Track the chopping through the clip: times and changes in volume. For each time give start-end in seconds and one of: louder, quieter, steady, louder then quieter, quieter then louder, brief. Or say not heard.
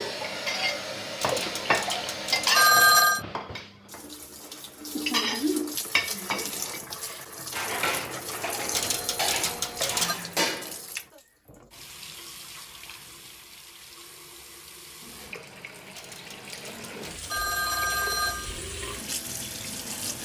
not heard.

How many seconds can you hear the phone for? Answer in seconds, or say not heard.
6 s.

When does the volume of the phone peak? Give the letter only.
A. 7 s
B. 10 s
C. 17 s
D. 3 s
D.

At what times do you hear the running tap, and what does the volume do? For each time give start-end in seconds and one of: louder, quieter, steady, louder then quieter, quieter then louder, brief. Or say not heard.
0.0-20.2 quieter then louder.